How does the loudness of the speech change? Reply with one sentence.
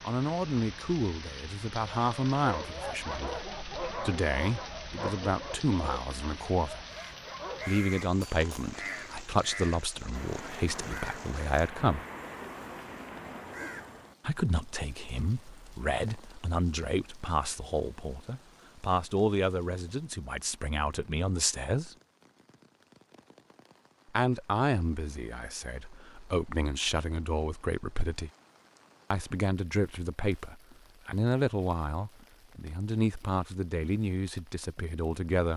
The volume of the speech stays about the same.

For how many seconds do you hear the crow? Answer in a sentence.
You can hear the crow for 7 seconds altogether.